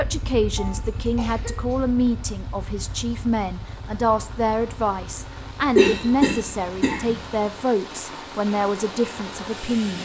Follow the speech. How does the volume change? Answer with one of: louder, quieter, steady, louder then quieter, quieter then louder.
steady.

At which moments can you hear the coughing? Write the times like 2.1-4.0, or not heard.
0.6-1.9, 5.8-7.2.